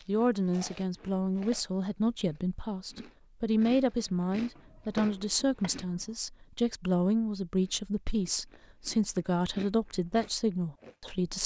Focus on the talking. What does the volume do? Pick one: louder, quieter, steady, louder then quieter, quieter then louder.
steady.